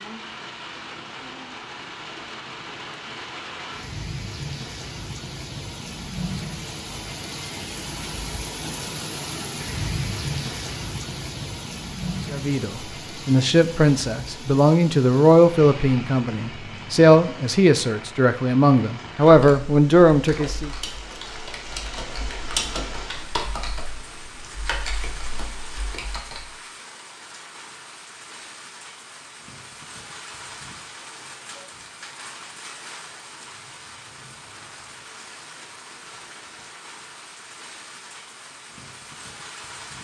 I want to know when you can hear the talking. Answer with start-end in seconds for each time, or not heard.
12.3-20.7.